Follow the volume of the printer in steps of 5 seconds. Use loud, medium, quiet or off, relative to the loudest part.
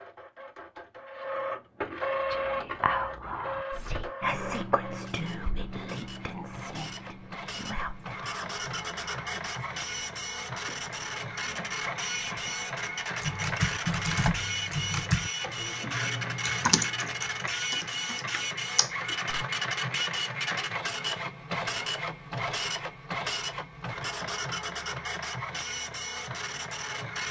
loud, medium, loud, loud, loud, loud.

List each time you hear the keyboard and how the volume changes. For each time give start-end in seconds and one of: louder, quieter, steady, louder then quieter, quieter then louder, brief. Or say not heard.
13.2-19.4 quieter.